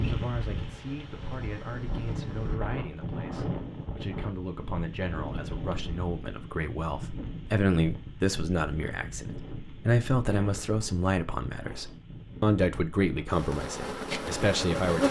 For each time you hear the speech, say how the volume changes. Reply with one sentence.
You can hear the speech from 0.1 to 15.0 s, getting louder.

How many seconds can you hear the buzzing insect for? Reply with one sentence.
You can hear the buzzing insect for 4 seconds altogether.